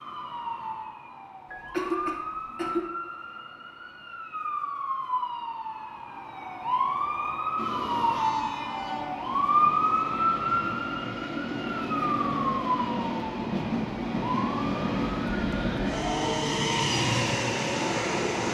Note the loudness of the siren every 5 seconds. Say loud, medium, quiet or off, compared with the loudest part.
medium, loud, loud, medium.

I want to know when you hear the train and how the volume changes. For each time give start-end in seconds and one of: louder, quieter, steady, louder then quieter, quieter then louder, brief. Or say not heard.
7.5-18.5 louder.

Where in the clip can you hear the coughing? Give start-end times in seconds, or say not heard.
1.5-2.9.